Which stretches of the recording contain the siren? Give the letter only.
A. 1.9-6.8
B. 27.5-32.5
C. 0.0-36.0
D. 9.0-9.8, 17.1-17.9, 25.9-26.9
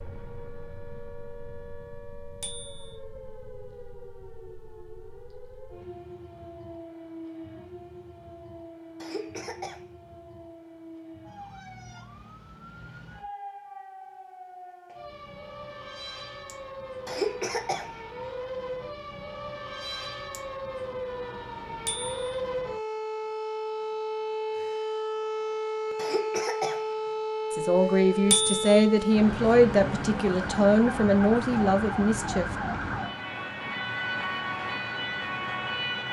C.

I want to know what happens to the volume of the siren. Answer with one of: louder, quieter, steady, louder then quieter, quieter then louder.
louder.